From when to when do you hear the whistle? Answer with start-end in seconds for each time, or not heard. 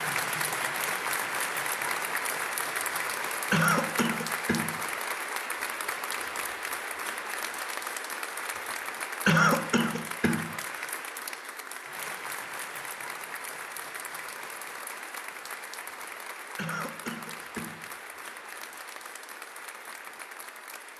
not heard.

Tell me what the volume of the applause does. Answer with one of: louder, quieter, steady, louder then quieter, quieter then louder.
quieter.